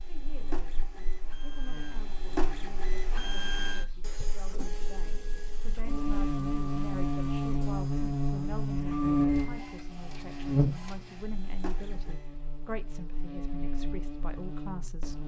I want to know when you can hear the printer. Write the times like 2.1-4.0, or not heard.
0.0-12.3.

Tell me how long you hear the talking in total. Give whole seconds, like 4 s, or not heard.
15 s.